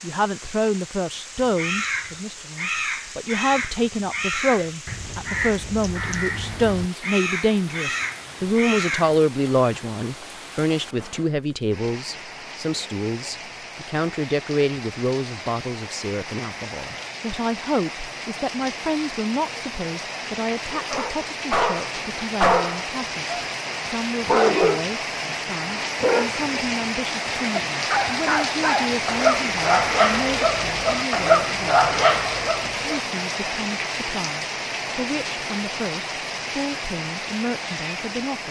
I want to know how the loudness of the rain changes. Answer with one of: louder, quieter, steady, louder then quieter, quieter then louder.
louder.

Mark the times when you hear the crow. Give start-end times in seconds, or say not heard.
1.4-9.2.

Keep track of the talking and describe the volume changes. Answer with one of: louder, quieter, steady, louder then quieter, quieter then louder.
quieter.